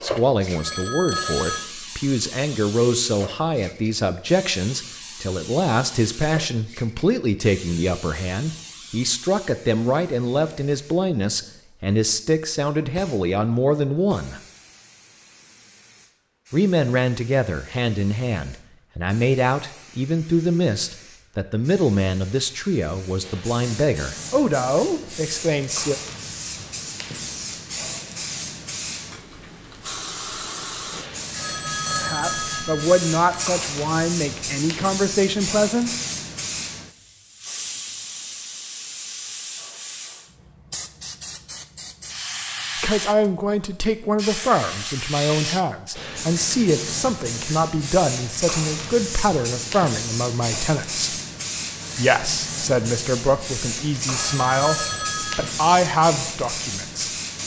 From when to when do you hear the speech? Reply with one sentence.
The speech can be heard from 0.0 to 14.4 s, from 16.5 to 25.9 s, from 31.9 to 35.9 s, from 42.8 to 51.2 s and from 52.0 to 57.1 s.